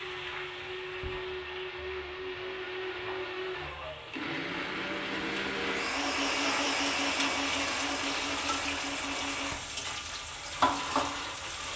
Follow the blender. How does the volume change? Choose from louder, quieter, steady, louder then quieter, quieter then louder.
louder then quieter.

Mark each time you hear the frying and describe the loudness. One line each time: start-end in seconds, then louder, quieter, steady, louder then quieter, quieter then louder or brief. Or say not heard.
0.0-11.7 louder.